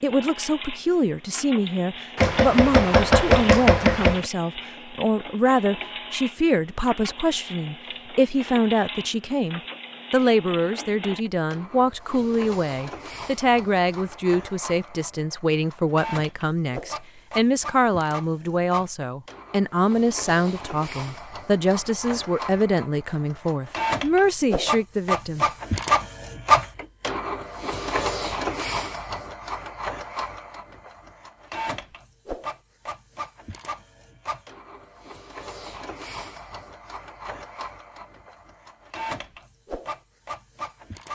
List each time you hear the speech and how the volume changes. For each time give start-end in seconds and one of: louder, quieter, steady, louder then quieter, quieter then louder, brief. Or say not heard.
0.0-25.4 steady.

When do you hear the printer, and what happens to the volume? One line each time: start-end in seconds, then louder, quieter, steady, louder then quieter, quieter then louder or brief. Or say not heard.
0.0-41.1 louder then quieter.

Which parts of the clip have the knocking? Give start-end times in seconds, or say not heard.
2.1-4.3.